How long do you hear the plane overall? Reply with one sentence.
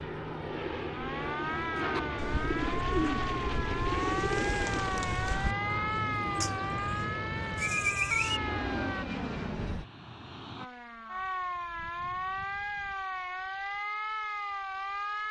You can hear the plane for 11 seconds altogether.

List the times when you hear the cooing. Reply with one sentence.
You can hear the cooing from 1.9 to 8.4 s.